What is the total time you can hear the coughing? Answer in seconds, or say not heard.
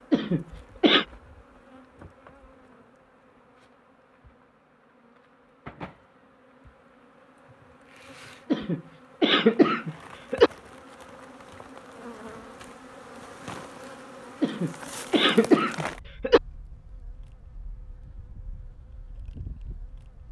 5 s.